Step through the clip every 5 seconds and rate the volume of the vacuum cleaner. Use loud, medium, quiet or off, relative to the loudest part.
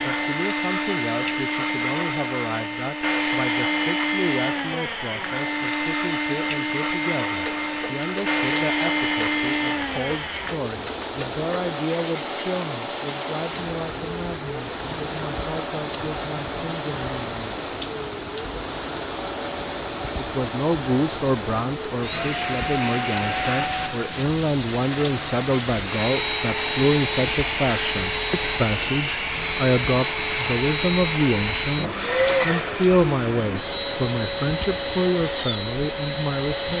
loud, loud, medium, medium, loud, loud, loud, loud.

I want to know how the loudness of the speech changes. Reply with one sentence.
The loudness of the speech goes up.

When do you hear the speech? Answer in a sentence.
The speech can be heard from 0.0 to 17.6 s and from 20.1 to 36.7 s.